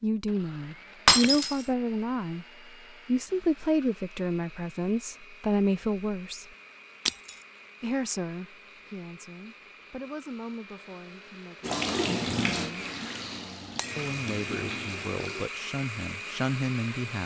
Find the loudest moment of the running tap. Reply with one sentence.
The loudest moment of the running tap is at 12 seconds.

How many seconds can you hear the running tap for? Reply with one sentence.
You can hear the running tap for 4 seconds altogether.